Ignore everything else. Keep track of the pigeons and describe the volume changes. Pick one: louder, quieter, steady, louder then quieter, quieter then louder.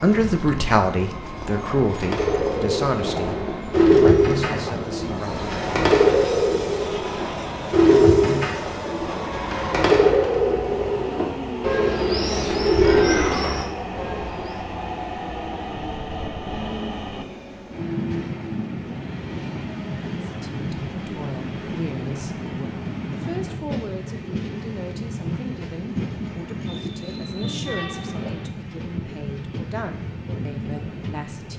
steady.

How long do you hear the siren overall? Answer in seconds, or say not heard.
not heard.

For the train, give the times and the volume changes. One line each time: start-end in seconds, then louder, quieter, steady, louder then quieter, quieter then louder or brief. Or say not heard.
0.0-31.5 steady.